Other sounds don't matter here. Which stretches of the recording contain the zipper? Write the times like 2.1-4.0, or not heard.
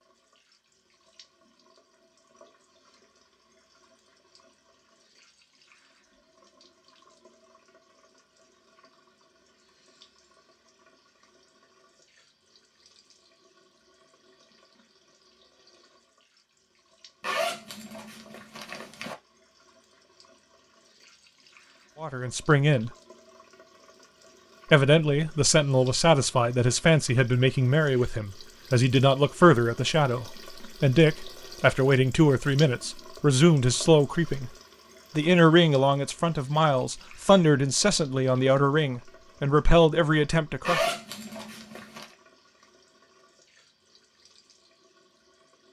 17.2-19.1, 40.6-42.0.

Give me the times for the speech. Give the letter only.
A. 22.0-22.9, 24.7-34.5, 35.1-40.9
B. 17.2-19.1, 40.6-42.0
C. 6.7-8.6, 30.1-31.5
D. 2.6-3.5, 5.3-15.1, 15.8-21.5
A.